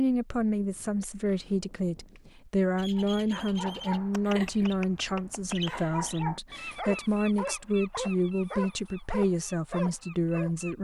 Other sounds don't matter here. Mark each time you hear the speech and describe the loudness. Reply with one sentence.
The speech can be heard from 0.0 to 10.7 s, at a steady volume.